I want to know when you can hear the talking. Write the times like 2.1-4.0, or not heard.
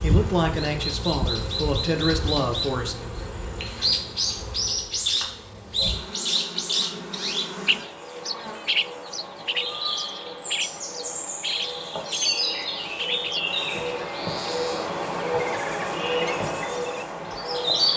0.0-3.0.